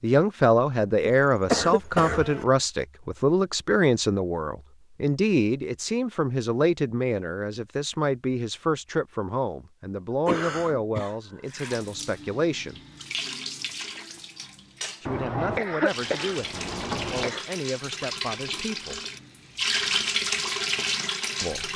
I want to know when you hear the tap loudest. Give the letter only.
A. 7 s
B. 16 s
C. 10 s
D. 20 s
D.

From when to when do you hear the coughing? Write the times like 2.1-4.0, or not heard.
1.1-2.5, 10.2-11.2, 15.1-17.4.